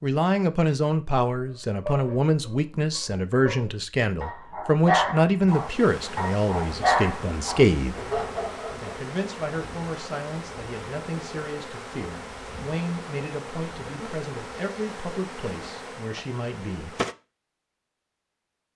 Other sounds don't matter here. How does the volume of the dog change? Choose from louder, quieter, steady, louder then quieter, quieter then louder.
louder then quieter.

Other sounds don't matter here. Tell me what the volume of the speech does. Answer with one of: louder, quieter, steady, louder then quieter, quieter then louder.
quieter.